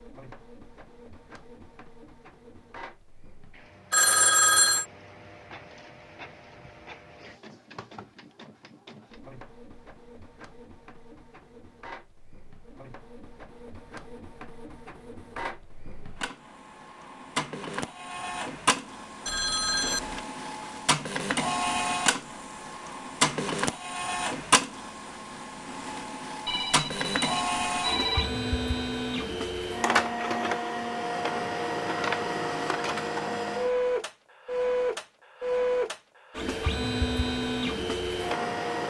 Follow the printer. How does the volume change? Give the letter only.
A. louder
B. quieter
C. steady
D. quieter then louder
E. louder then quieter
A.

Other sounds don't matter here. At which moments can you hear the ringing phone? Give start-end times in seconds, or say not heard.
3.9-4.8, 19.2-20.2, 26.4-28.3.